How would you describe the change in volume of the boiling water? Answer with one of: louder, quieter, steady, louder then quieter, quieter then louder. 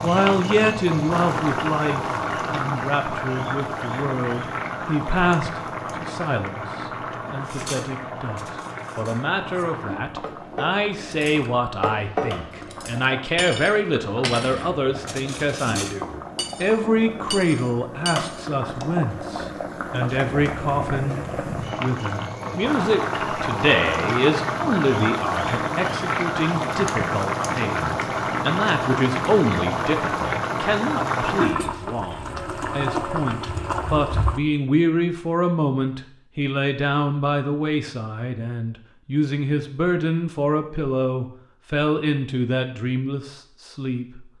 quieter then louder.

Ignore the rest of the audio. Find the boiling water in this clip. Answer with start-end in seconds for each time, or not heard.
0.0-34.4.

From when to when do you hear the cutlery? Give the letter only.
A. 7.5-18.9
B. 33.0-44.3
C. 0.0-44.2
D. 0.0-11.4
A.